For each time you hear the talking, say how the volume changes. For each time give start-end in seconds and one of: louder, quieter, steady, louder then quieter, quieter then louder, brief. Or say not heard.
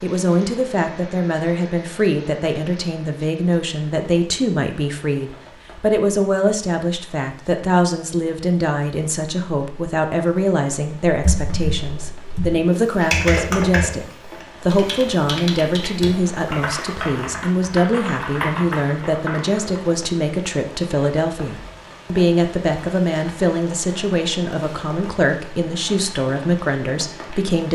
0.0-27.7 steady.